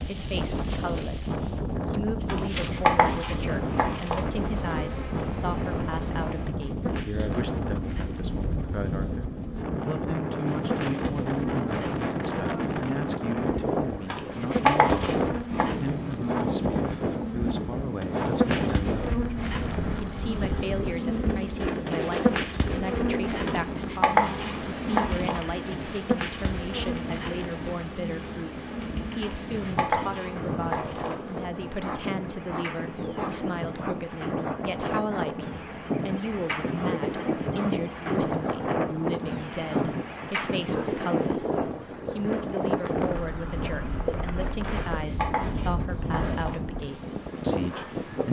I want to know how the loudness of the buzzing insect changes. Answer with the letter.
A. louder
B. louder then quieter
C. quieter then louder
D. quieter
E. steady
B.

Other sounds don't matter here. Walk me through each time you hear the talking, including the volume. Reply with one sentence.
The talking can be heard from 0.1 to 48.2 s, at a steady volume.